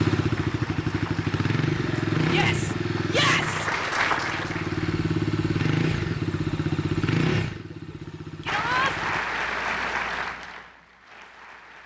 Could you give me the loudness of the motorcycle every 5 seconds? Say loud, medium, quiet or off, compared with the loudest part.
loud, loud, off.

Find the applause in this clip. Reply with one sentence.
You can hear the applause from 0.1 to 5.0 s and from 8.4 to 11.8 s.